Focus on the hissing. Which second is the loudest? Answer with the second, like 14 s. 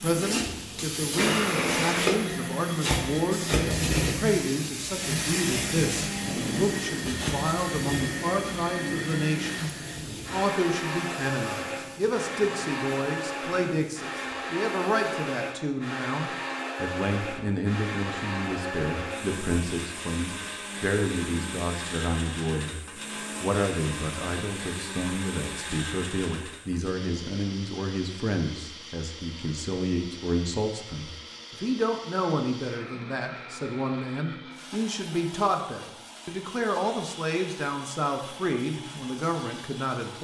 2 s.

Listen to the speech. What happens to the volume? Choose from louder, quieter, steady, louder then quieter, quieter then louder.
steady.